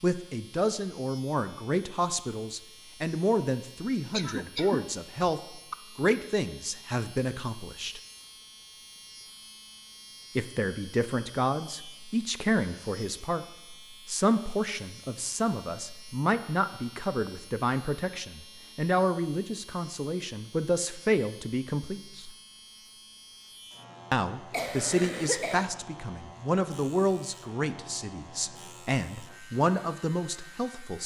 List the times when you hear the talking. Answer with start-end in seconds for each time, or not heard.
0.0-8.0, 10.3-22.3, 24.1-31.0.